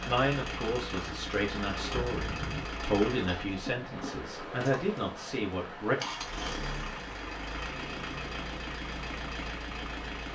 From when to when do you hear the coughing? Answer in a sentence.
The coughing can be heard from 1.9 to 2.6 s.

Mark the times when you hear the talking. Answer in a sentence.
The talking can be heard from 0.1 to 6.0 s.